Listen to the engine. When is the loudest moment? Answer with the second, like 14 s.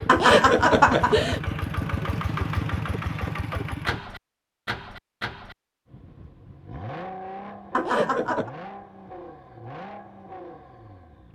2 s.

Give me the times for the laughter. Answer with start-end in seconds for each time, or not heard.
0.1-1.4, 7.7-8.5.